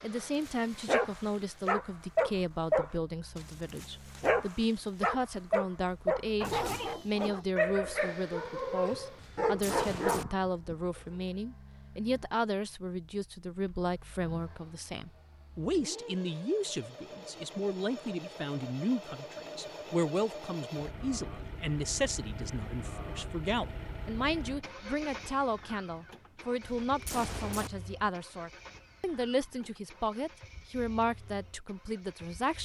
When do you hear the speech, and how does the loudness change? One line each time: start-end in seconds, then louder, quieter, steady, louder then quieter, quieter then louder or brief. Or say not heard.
0.0-32.6 steady.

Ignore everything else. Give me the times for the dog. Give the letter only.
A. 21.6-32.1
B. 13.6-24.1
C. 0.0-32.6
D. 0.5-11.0
D.